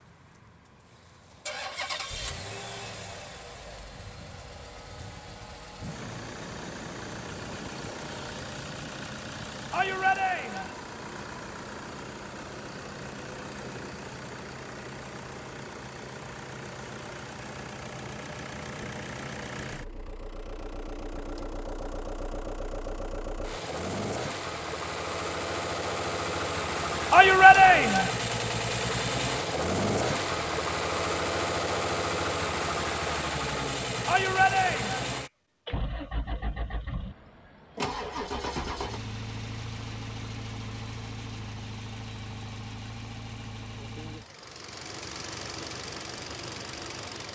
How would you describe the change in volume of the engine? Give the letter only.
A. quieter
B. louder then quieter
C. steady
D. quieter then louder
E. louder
B.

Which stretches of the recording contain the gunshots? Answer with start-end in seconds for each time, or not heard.
not heard.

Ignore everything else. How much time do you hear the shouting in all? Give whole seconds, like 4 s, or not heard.
3 s.